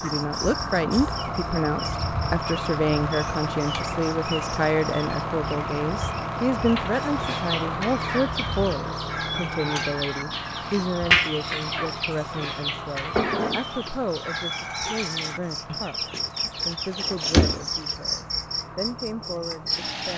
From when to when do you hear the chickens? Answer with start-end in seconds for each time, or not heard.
7.0-17.9.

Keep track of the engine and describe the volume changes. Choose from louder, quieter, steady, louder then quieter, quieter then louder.
quieter.